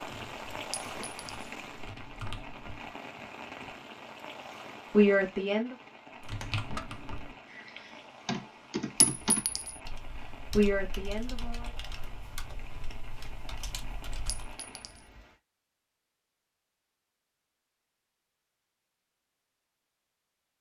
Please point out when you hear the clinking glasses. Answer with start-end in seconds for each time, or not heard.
0.7-1.2, 9.0-9.8, 14.2-15.1.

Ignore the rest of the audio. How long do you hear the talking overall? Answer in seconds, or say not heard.
2 s.